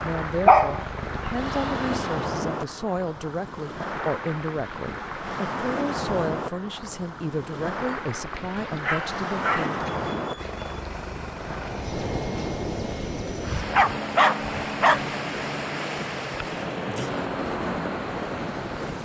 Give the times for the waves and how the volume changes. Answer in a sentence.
The waves can be heard from 0.0 to 19.0 s, at a steady volume.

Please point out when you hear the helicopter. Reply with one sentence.
The helicopter can be heard from 0.0 to 2.0 s and from 10.3 to 19.0 s.